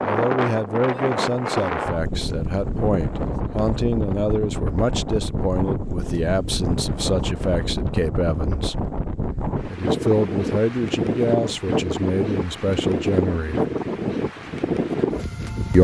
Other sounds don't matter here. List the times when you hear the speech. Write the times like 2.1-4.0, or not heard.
0.0-8.8, 9.7-13.7.